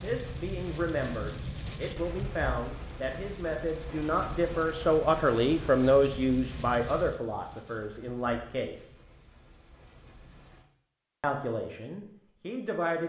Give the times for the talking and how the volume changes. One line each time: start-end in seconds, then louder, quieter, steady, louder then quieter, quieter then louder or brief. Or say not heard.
0.0-8.9 louder then quieter
11.2-13.0 brief.